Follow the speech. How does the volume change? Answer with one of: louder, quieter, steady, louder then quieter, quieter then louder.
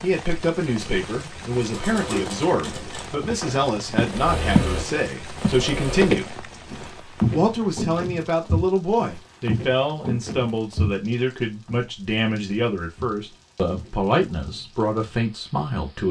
steady.